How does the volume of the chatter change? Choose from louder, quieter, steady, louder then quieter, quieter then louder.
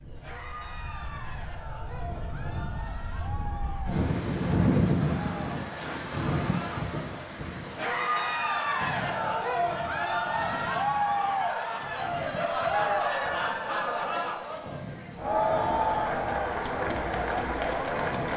louder.